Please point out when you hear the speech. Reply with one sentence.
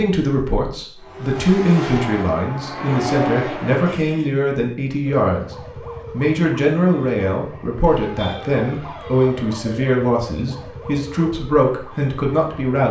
You can hear the speech from 0.0 to 12.8 s.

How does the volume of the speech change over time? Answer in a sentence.
The volume of the speech stays about the same.